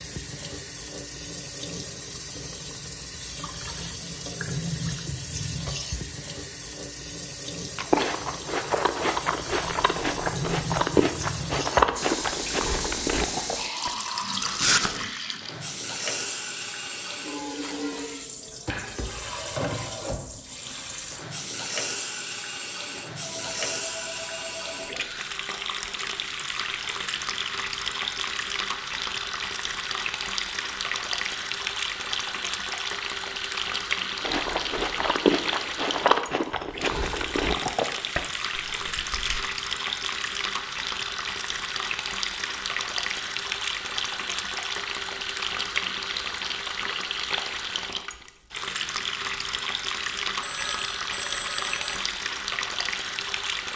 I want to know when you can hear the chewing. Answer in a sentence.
You can hear the chewing from 7.8 to 15.1 s and from 34.2 to 39.4 s.